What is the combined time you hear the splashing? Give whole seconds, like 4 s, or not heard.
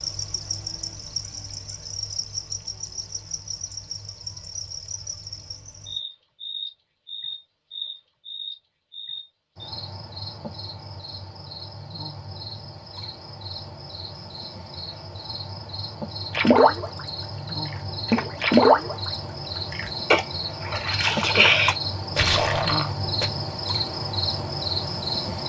6 s.